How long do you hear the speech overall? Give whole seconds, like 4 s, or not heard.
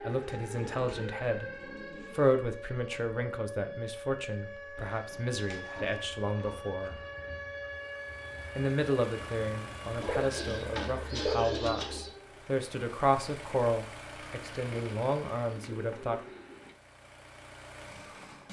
15 s.